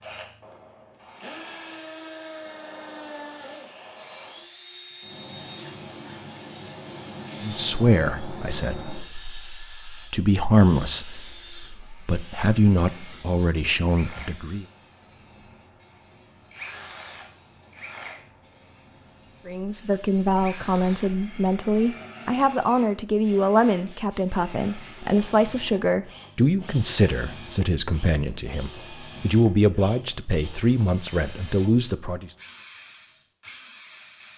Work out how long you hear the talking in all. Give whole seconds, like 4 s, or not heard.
20 s.